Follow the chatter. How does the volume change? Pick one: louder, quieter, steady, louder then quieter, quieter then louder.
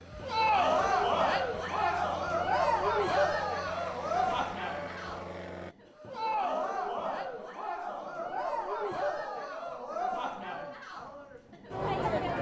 quieter.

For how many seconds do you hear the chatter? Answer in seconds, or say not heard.
12 s.